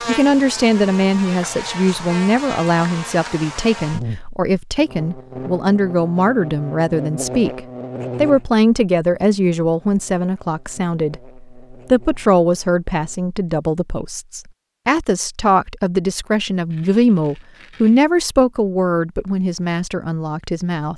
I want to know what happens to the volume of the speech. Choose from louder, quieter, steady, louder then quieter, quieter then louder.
steady.